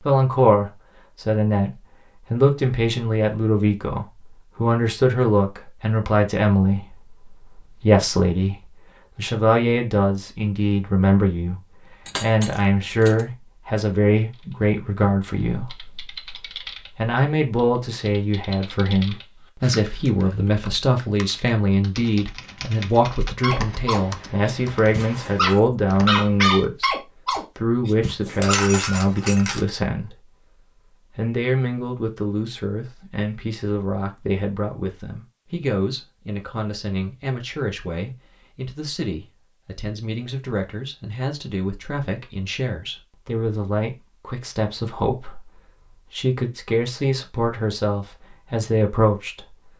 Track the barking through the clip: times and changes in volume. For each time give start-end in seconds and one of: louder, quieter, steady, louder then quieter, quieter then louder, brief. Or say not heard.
23.4-28.6 louder then quieter.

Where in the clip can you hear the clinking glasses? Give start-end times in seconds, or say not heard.
12.1-13.2, 28.4-29.6.